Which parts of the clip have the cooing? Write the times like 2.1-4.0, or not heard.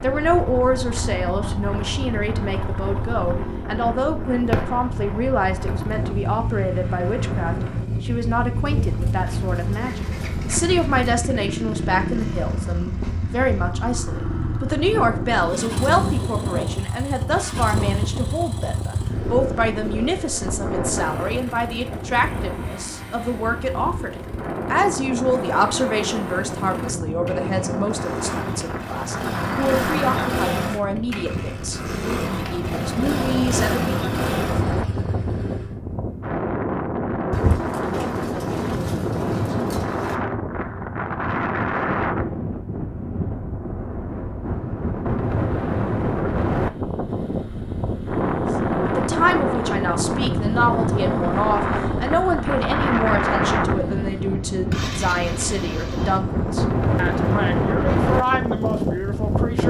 8.7-10.9, 37.3-40.1.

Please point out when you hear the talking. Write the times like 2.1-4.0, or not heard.
0.0-33.9, 48.9-59.6.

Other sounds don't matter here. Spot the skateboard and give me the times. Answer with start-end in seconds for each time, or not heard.
not heard.